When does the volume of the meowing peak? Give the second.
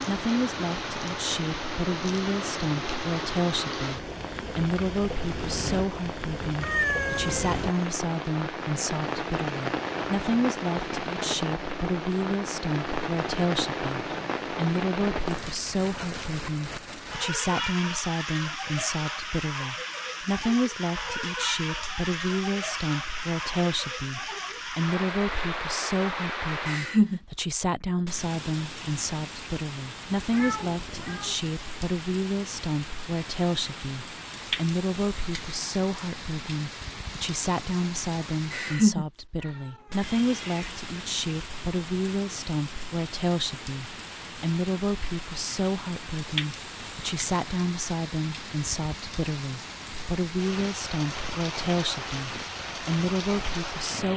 7 s.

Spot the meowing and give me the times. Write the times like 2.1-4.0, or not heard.
6.6-7.5, 30.3-31.4, 39.4-40.8.